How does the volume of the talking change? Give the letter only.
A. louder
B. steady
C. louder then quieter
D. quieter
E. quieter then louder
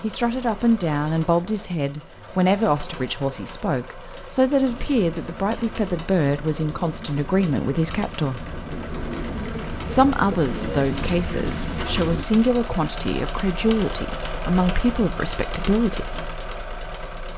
B.